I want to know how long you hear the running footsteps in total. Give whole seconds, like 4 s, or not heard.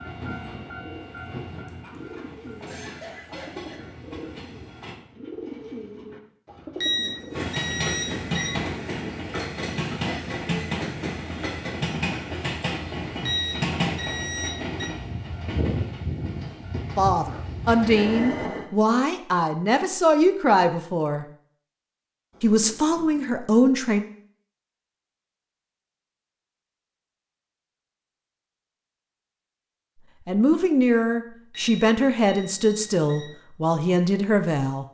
not heard.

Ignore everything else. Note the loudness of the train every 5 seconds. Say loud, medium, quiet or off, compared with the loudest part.
medium, loud, loud, loud, off, off, off.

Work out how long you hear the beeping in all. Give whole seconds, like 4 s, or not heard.
5 s.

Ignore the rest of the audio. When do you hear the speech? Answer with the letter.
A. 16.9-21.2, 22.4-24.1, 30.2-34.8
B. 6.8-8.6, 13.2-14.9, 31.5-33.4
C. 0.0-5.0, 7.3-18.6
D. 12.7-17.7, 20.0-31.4
A.